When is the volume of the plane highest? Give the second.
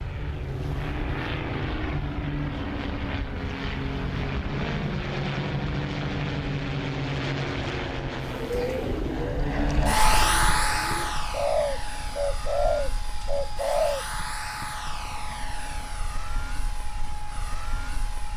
10 s.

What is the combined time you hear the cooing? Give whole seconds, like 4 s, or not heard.
6 s.